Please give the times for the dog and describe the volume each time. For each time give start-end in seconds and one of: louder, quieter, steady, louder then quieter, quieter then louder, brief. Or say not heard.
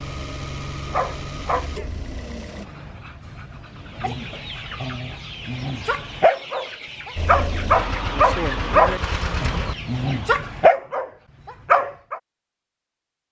0.9-12.2 louder.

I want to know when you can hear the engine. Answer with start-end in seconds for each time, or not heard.
0.0-2.6, 7.2-9.8.